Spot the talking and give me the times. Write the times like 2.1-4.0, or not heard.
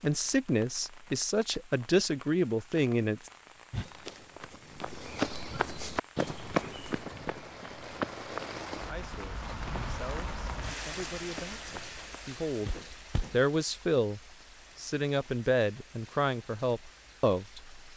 0.0-3.3, 8.8-17.8.